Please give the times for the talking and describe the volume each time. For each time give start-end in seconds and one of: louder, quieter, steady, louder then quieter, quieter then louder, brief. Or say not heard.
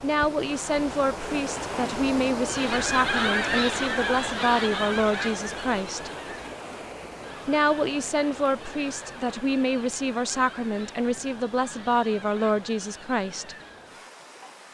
0.0-6.1 steady
7.5-13.6 steady.